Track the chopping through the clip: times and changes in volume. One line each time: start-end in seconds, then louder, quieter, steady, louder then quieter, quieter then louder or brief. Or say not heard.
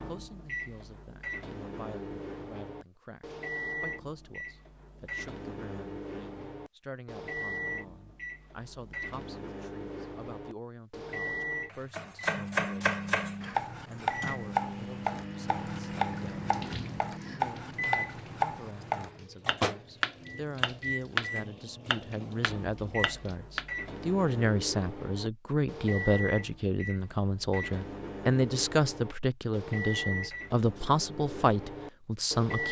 11.7-23.6 steady.